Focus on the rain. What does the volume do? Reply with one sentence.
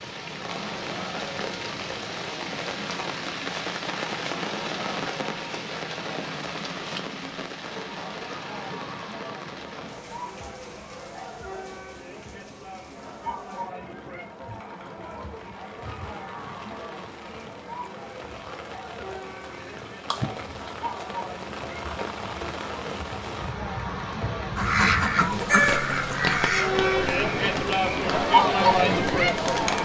The volume of the rain goes down, then up.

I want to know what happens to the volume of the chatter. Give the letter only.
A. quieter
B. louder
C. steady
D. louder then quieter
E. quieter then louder
B.